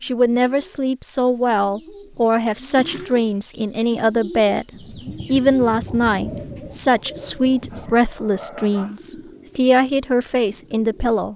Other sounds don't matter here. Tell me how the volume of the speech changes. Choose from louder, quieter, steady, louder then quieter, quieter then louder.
steady.